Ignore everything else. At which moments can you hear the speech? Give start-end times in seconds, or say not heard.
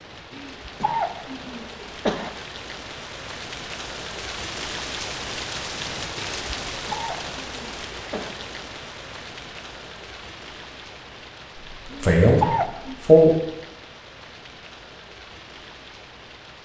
11.8-13.3.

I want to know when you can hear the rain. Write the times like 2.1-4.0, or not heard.
0.0-16.6.